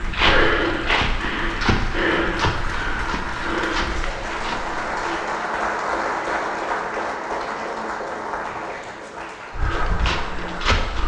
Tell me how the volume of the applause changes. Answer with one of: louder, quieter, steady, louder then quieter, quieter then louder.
louder then quieter.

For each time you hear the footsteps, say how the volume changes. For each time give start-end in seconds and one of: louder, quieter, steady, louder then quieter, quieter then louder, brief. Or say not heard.
0.0-5.2 quieter
9.5-11.0 brief.